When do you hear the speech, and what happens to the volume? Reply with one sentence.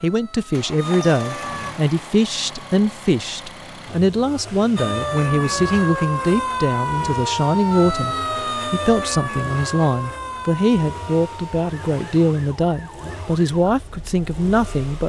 The speech can be heard from 0.0 to 15.0 s, at a steady volume.